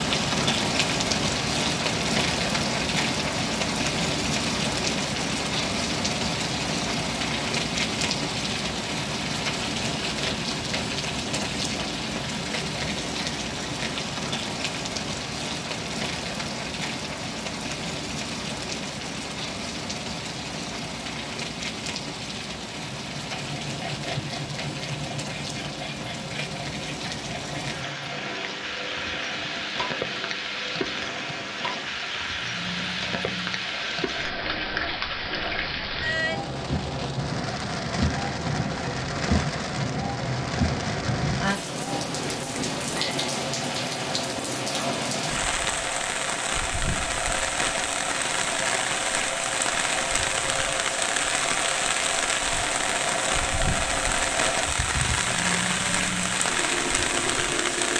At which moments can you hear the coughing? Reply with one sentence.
The coughing can be heard from 54.6 to 55.3 s.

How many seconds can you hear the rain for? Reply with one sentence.
The rain can be heard for 58 seconds in total.